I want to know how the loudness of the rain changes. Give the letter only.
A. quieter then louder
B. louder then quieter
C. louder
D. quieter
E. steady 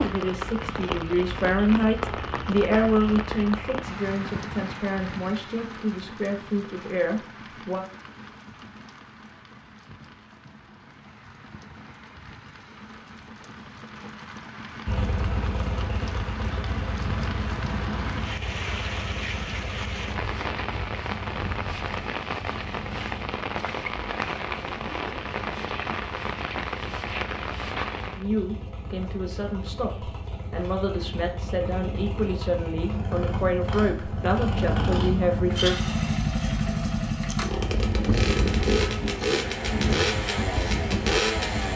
A.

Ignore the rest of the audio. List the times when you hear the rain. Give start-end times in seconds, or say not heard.
0.0-28.2.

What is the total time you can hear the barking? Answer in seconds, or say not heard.
not heard.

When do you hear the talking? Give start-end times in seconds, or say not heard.
0.0-7.8, 28.1-35.8.